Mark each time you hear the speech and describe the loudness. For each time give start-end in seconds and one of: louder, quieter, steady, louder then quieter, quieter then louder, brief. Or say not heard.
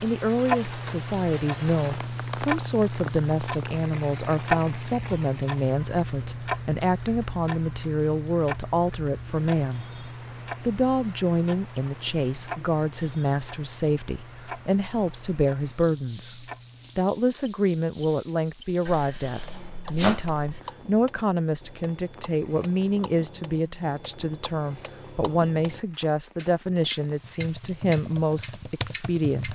0.0-9.8 steady
10.7-29.4 steady.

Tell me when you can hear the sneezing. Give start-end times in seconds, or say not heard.
18.9-20.6.